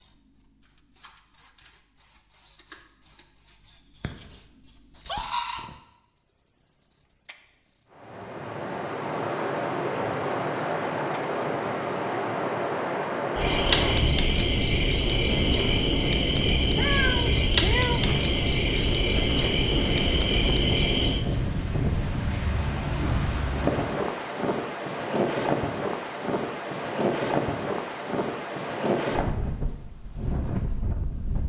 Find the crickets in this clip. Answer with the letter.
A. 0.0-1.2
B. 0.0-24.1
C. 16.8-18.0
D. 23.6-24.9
B.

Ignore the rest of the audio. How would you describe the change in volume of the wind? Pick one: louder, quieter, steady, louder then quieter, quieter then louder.
steady.